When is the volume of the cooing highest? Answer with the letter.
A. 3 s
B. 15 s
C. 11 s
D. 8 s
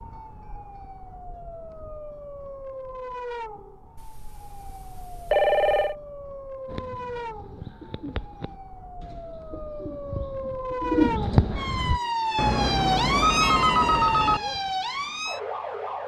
C.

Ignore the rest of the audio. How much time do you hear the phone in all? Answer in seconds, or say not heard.
4 s.